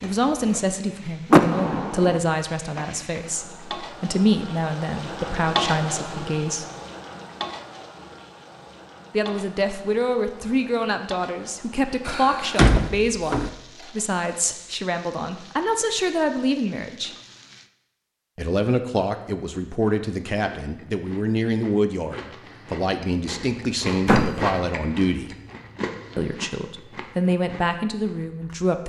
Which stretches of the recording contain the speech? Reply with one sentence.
You can hear the speech from 0.0 to 6.7 s, from 9.1 to 17.1 s, from 18.4 to 25.4 s and from 26.1 to 28.8 s.